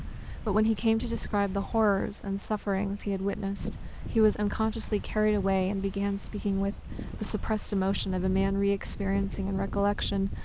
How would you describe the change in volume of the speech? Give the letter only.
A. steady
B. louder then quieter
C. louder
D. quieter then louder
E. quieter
A.